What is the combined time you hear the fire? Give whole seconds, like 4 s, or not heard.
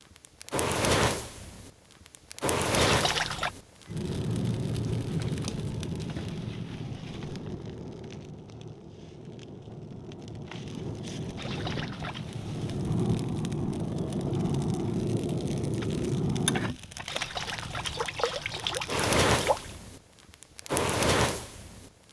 22 s.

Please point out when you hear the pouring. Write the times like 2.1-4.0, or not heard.
2.8-3.5, 11.3-12.2, 17.1-19.8.